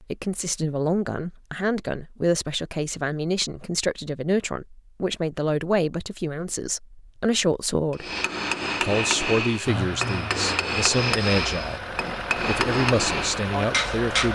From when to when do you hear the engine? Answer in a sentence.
The engine can be heard from 9.7 to 14.3 s.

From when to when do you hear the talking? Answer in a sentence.
The talking can be heard from 0.0 to 8.1 s, from 8.8 to 11.8 s and from 12.4 to 14.3 s.